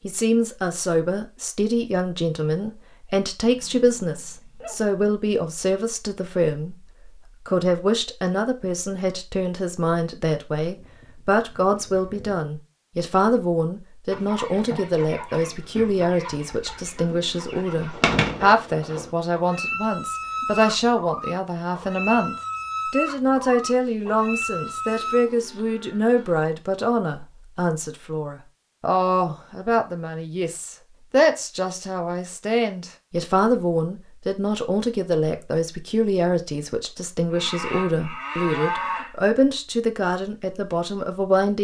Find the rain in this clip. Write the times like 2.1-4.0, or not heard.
not heard.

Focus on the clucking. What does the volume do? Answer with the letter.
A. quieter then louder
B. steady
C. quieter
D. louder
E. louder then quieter
D.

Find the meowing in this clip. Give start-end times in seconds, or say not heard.
not heard.